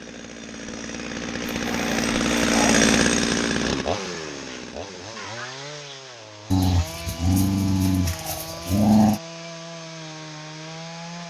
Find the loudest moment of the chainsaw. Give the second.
3 s.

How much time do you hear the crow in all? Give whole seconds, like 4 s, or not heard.
not heard.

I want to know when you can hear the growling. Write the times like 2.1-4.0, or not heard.
1.5-3.0, 6.5-9.2.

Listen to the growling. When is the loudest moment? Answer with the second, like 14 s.
9 s.